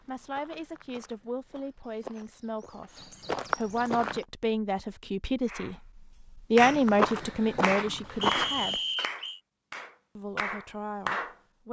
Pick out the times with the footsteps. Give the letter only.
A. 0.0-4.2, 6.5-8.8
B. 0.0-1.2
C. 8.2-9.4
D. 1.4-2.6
A.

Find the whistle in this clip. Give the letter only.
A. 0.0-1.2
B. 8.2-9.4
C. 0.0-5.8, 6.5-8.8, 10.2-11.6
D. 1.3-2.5
B.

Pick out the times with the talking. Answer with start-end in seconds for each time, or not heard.
0.0-5.8, 6.5-8.8, 10.2-11.6.